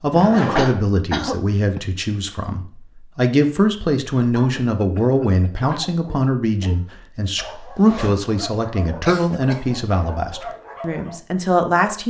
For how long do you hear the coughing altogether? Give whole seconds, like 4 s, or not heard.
3 s.